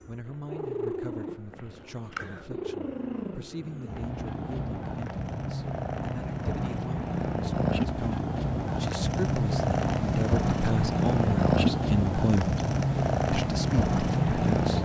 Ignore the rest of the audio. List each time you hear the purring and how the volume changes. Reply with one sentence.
You can hear the purring from 0.0 to 14.7 s, getting louder.